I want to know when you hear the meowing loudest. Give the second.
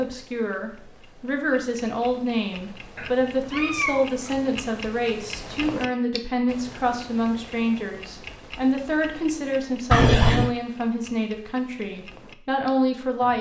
10 s.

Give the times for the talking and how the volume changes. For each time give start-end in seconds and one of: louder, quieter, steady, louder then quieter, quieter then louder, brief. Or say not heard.
0.0-13.3 steady.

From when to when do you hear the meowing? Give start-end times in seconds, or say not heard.
3.0-4.5, 9.9-10.5.